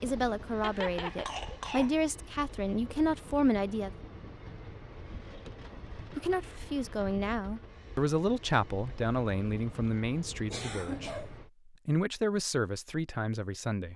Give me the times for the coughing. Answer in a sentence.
The coughing can be heard from 0.6 to 1.9 s and from 10.5 to 11.3 s.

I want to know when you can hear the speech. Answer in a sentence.
You can hear the speech from 0.0 to 3.9 s and from 5.7 to 13.9 s.